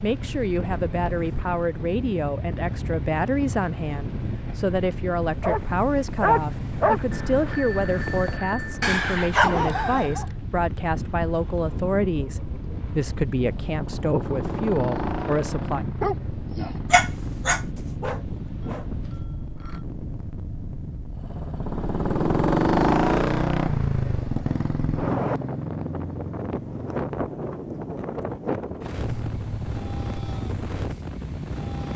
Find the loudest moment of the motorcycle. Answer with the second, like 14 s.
23 s.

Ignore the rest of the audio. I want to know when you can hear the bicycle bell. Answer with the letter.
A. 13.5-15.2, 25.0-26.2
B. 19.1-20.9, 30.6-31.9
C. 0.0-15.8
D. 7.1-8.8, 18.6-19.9
D.